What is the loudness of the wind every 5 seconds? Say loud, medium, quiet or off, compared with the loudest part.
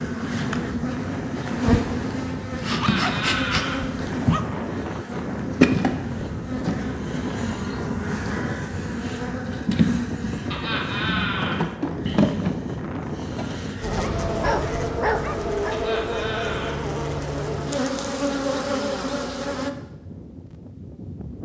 loud, loud, loud, medium, medium.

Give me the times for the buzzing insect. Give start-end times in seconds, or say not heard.
0.0-19.7.